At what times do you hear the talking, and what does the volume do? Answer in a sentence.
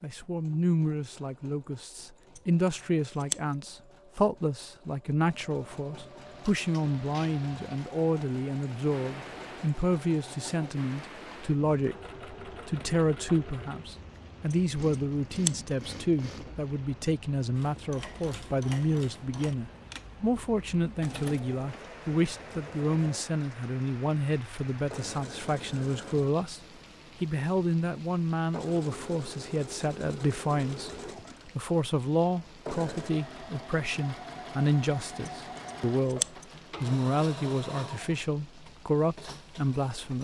You can hear the talking from 0.0 to 26.6 s, at a steady volume; and from 27.2 to 40.1 s, at a steady volume.